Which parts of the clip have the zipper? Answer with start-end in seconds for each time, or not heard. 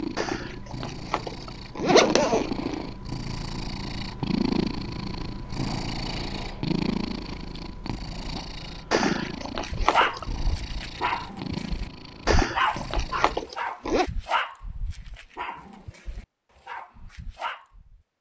0.1-2.8, 8.9-10.6, 12.2-14.1.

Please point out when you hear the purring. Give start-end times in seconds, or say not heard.
0.0-13.4.